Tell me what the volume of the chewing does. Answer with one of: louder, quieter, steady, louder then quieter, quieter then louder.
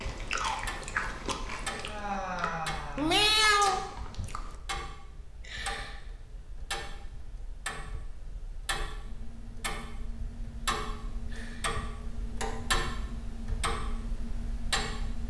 quieter then louder.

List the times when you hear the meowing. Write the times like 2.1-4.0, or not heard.
3.0-4.3.